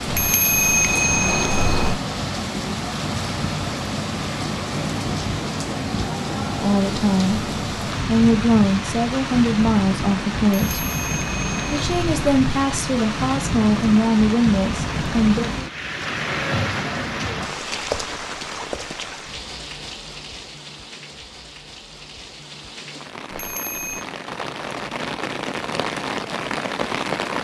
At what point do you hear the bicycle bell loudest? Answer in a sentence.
The volume of the bicycle bell peaks at 1 second.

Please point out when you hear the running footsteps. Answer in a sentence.
You can't hear the running footsteps here.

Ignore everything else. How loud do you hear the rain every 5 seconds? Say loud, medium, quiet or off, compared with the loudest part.
loud, loud, loud, loud, medium, loud.